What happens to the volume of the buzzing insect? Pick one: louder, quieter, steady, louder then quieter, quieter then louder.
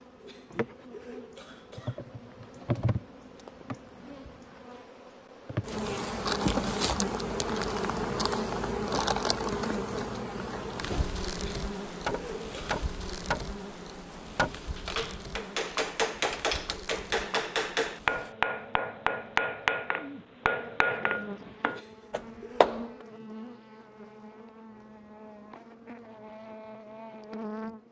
louder then quieter.